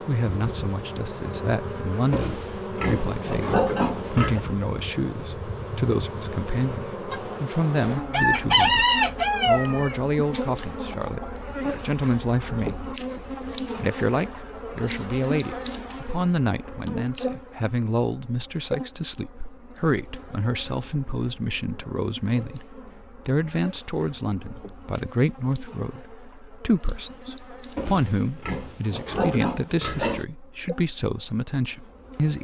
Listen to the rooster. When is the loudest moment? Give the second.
9 s.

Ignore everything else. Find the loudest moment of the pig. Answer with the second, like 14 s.
4 s.